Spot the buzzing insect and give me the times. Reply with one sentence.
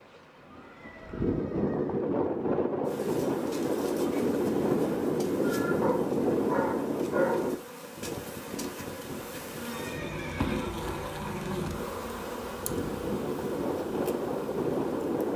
You can hear the buzzing insect from 2.9 to 15.3 s.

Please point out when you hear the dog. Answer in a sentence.
The dog can be heard from 5.8 to 7.5 s.